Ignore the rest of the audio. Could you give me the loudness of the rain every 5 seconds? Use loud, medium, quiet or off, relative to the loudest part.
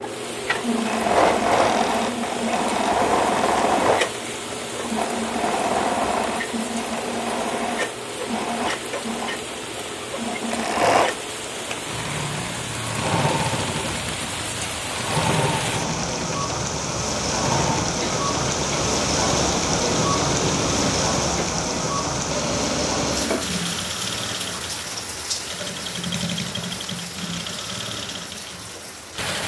medium, medium, medium, loud, loud, medium.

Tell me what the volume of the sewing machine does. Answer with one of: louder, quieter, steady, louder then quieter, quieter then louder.
quieter.